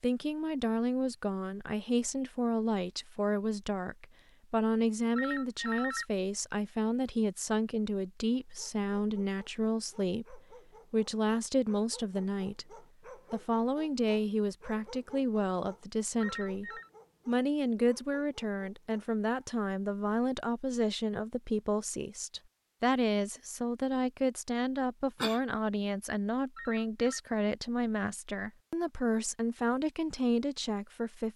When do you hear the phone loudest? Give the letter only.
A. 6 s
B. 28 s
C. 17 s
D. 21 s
A.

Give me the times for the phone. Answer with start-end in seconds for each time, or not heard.
5.2-6.0, 16.2-16.9, 26.6-27.2.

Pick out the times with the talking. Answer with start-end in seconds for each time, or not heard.
0.0-12.7, 13.3-31.3.